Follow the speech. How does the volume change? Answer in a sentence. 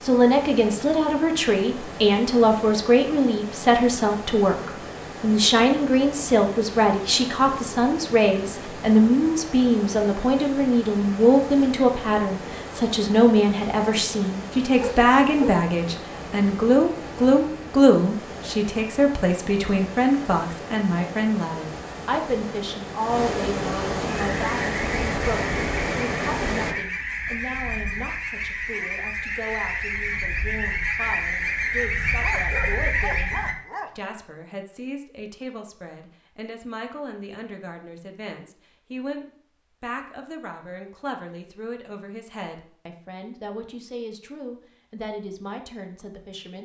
The loudness of the speech goes down.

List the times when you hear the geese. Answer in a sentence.
You can hear the geese from 24.1 to 33.5 s.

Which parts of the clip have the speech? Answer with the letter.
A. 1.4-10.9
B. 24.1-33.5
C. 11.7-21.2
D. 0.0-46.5
D.